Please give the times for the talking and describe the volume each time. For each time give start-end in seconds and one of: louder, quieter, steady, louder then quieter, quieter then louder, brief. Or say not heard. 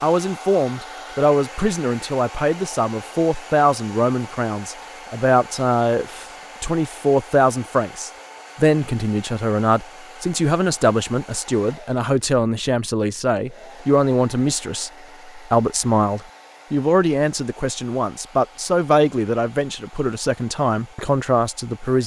0.0-22.0 steady.